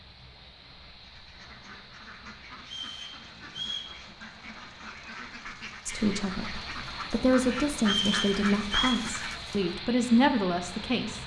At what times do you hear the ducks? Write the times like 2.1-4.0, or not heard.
1.0-9.8.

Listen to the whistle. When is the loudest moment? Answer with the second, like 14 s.
8 s.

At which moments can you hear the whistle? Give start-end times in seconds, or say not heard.
2.6-3.9, 7.8-9.0.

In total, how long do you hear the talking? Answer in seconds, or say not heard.
5 s.